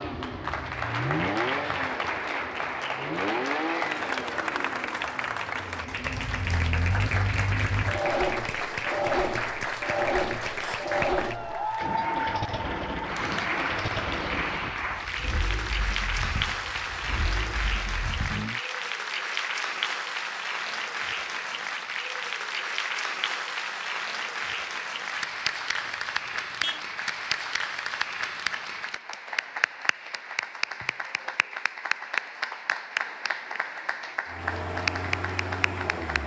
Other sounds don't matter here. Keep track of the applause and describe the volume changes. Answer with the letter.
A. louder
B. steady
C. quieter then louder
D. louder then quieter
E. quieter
B.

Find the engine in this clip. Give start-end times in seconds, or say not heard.
0.0-18.6, 34.2-36.2.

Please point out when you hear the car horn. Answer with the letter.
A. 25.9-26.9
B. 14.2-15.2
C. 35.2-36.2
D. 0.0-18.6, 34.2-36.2
A.